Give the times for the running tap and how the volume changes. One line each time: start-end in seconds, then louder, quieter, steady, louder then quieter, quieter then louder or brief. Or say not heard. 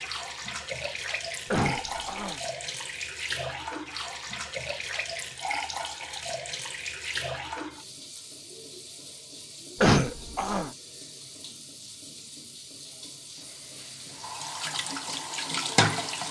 0.0-16.2 quieter then louder.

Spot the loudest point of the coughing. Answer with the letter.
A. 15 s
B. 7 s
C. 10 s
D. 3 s
C.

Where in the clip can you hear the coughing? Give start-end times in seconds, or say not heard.
1.5-2.4, 9.8-10.7.